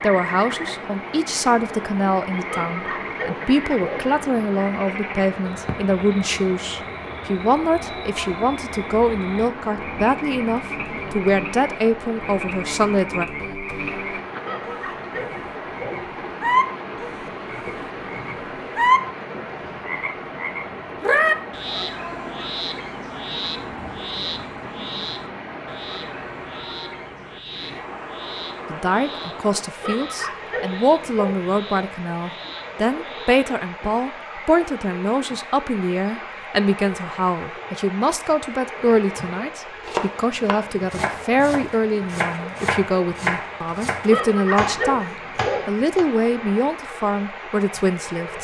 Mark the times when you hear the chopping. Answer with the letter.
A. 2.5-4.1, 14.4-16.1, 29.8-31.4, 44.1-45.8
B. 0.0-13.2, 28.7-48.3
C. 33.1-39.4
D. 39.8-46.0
D.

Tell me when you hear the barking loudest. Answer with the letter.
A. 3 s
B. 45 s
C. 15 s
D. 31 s
B.